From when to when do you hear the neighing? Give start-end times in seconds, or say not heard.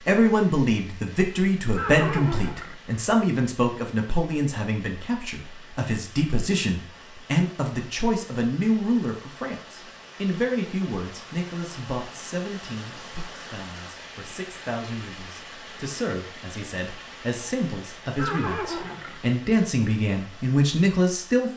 1.8-2.8, 18.1-19.2.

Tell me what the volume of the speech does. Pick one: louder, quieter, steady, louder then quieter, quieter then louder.
quieter then louder.